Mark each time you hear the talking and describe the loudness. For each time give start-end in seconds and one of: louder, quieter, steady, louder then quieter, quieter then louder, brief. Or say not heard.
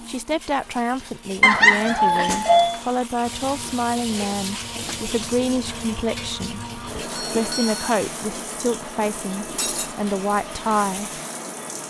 0.0-11.2 steady.